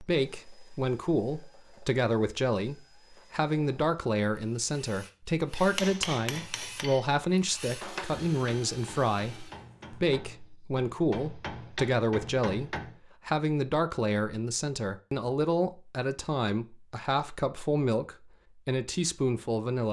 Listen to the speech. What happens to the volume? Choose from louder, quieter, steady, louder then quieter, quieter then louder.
steady.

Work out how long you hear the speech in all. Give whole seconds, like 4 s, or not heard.
20 s.